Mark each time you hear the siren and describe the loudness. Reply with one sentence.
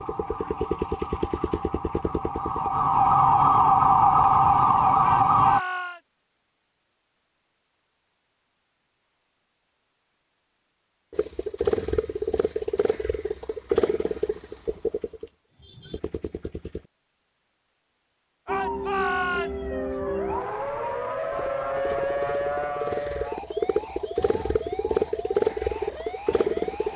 The siren can be heard from 0.0 to 5.6 s, getting louder; and from 18.4 to 26.9 s, getting quieter.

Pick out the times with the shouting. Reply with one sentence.
You can hear the shouting from 5.0 to 6.0 s and from 18.4 to 19.7 s.